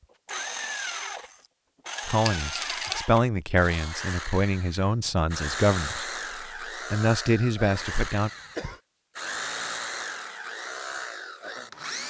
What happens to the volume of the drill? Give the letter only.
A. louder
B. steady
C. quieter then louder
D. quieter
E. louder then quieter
B.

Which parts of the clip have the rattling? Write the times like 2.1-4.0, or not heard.
2.2-3.0.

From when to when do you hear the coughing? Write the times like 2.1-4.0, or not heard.
7.7-8.8.